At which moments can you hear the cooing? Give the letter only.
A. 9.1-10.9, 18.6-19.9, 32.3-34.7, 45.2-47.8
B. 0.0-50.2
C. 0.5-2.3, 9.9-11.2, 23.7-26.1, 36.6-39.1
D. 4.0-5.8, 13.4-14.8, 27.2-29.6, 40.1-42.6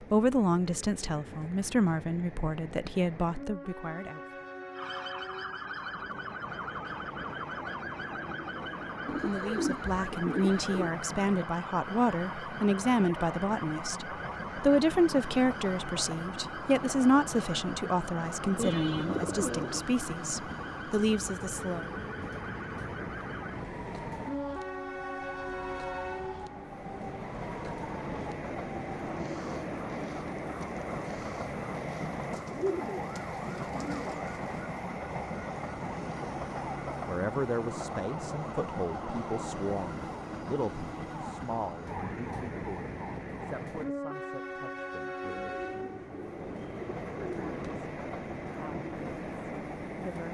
A.